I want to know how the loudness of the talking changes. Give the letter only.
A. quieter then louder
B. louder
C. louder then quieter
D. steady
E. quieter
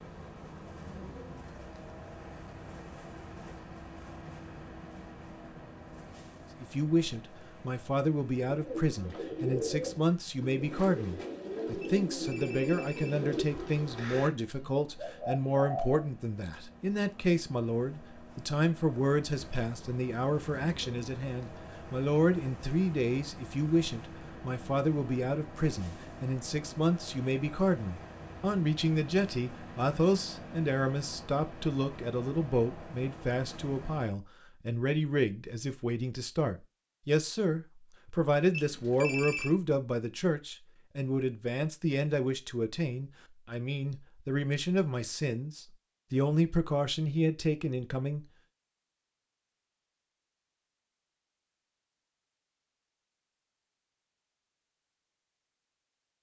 D.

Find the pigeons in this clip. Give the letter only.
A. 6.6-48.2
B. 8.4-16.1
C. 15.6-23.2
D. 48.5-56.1
B.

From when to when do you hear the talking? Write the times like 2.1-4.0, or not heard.
6.6-48.2.